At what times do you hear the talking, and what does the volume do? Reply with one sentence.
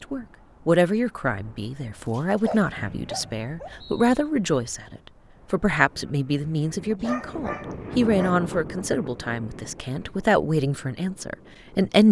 The talking can be heard from 0.0 to 12.0 s, at a steady volume.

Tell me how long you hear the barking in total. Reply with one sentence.
You can hear the barking for 3 seconds altogether.